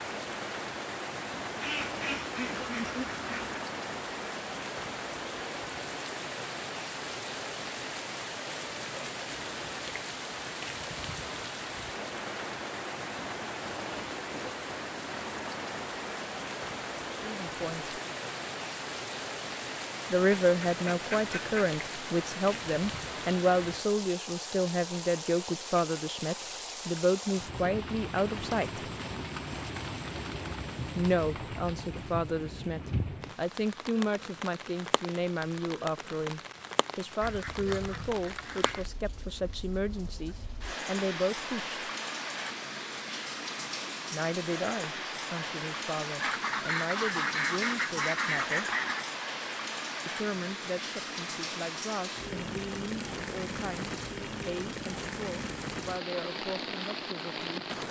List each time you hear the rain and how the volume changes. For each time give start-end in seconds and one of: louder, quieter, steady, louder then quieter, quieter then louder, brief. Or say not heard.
0.0-57.8 steady.